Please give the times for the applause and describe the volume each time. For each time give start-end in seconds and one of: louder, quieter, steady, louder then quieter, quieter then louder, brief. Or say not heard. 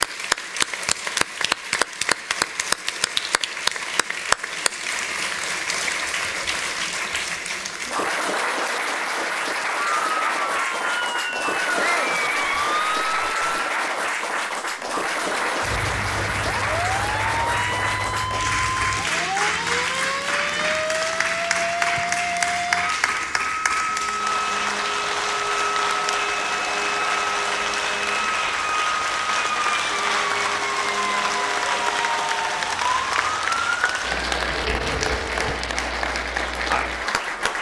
0.0-37.5 steady.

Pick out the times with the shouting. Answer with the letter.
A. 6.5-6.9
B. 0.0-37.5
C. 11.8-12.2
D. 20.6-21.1
C.